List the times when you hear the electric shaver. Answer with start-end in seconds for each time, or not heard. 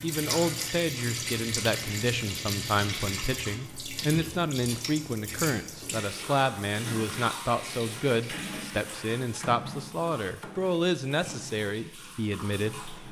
not heard.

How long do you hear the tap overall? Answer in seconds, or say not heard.
13 s.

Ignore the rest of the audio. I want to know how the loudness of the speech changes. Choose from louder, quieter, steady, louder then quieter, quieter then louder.
steady.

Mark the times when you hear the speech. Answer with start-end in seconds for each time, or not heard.
0.0-13.0.